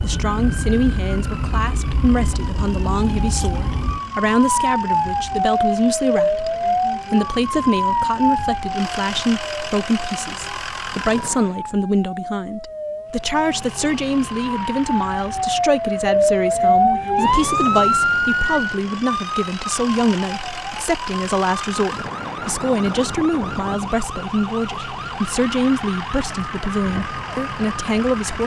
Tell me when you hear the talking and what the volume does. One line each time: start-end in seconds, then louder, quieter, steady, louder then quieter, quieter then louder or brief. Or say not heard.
0.0-28.4 steady.